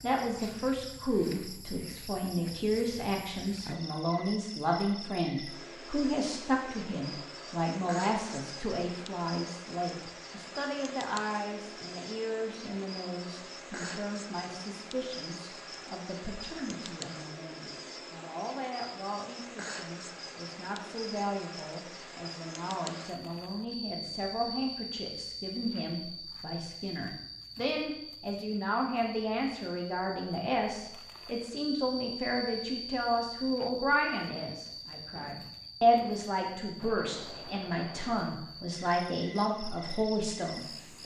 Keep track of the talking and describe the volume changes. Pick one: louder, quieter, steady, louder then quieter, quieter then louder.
quieter then louder.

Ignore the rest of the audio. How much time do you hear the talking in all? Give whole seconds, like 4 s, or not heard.
41 s.